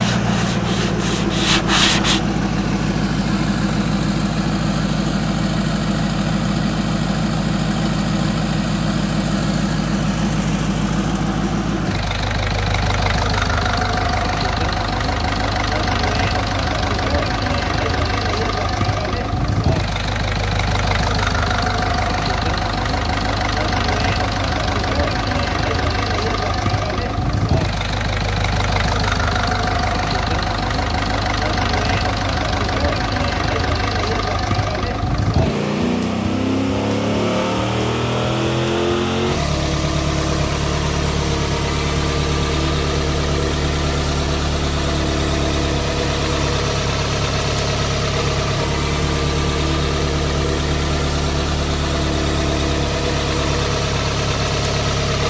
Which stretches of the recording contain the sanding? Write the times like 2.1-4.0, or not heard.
0.0-2.2.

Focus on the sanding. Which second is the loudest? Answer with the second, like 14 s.
2 s.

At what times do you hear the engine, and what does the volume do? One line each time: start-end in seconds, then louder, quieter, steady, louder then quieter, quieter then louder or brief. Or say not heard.
0.0-55.2 steady.